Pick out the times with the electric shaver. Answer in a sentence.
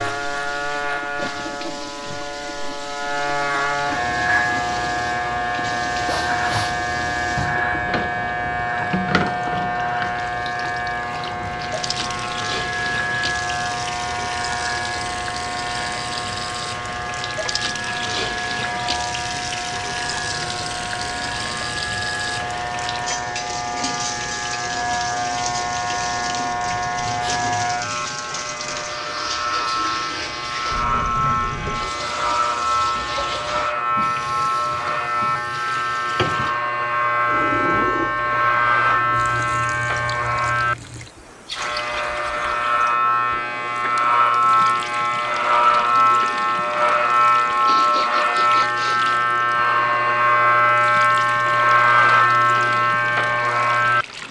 You can hear the electric shaver from 0.0 to 54.2 s.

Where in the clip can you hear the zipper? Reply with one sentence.
The zipper can't be heard in this clip.